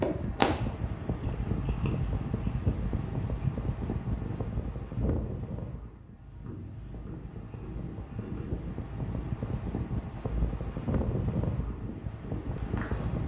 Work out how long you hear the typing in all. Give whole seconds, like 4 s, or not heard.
not heard.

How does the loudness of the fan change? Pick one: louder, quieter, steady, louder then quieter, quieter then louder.
quieter then louder.